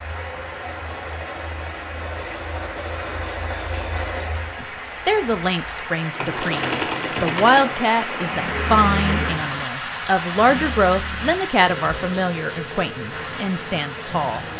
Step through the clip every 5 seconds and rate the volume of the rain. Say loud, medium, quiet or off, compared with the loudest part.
medium, loud, loud.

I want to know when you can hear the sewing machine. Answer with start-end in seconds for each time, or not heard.
0.0-14.5.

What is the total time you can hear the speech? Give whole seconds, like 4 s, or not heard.
10 s.